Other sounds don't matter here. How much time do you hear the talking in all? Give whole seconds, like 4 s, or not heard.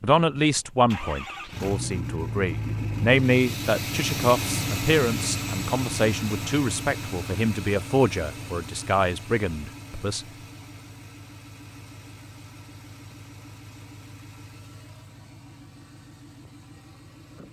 10 s.